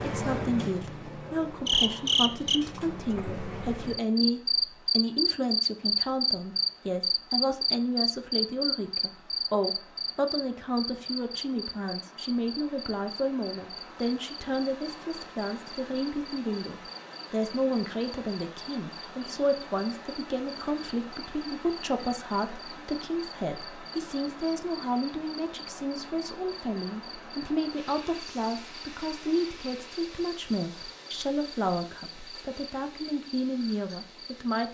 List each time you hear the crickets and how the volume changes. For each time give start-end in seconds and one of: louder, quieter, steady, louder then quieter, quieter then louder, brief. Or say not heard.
0.0-34.6 quieter.